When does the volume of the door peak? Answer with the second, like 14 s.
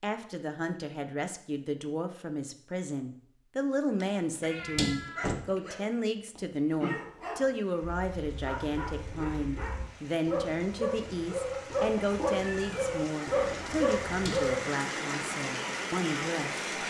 5 s.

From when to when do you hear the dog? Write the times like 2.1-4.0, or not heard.
5.2-14.6.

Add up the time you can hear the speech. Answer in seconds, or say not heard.
17 s.